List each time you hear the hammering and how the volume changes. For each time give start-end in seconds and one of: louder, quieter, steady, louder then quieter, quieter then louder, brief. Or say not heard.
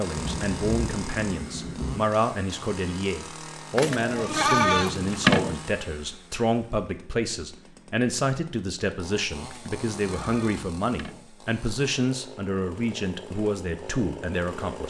not heard.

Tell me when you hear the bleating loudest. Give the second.
5 s.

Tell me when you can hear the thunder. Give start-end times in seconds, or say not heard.
0.1-2.0.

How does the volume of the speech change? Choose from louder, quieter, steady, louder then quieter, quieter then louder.
steady.